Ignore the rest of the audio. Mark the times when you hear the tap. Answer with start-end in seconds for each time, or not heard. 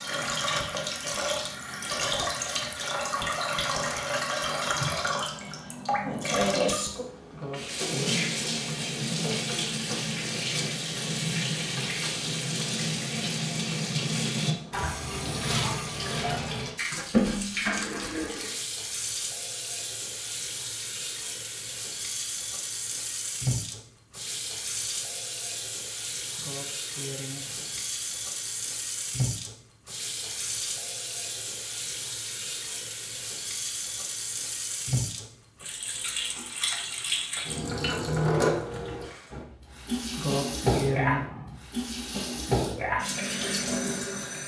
0.0-44.4.